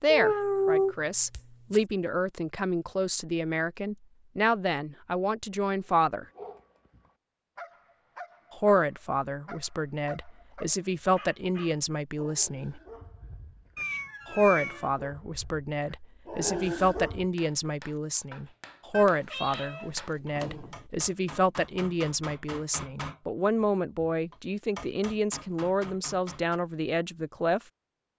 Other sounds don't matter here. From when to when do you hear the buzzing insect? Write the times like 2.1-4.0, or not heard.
not heard.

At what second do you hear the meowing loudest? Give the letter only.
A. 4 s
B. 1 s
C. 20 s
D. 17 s
B.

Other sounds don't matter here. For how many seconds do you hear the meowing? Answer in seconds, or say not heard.
5 s.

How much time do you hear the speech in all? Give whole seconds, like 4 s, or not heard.
24 s.